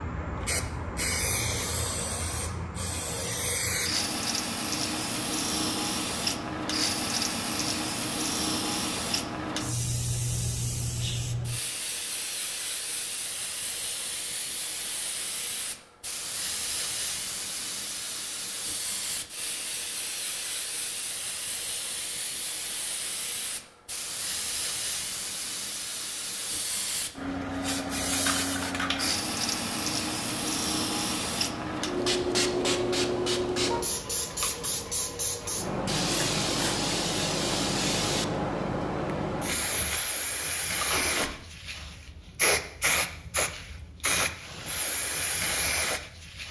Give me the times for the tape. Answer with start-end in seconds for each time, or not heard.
40.8-41.3.